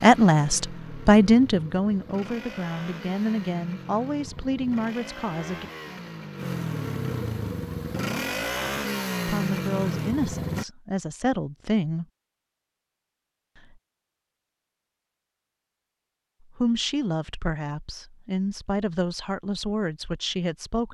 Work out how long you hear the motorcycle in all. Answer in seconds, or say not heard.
11 s.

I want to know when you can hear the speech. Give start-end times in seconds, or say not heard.
0.0-5.7, 9.2-12.1, 16.6-20.9.